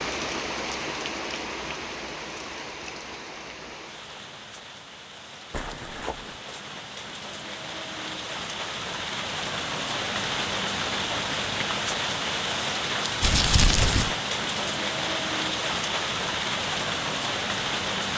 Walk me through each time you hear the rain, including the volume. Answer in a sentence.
You can hear the rain from 0.0 to 18.1 s, getting quieter then louder.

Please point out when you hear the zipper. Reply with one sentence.
You can hear the zipper from 5.5 to 6.4 s.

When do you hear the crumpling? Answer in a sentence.
You can hear the crumpling from 13.2 to 14.2 s.